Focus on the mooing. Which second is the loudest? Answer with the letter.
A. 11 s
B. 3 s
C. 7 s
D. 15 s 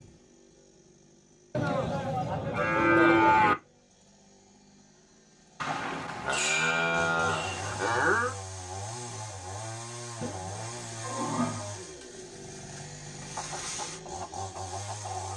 B.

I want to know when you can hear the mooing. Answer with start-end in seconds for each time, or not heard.
1.6-3.5, 5.6-8.3, 10.2-11.7.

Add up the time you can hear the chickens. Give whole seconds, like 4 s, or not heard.
2 s.